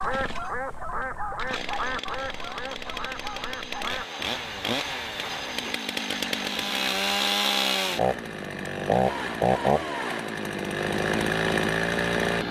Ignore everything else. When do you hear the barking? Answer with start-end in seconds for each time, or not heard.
not heard.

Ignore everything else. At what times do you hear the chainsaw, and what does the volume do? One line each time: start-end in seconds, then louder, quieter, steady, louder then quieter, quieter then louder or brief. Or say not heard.
0.0-12.4 louder.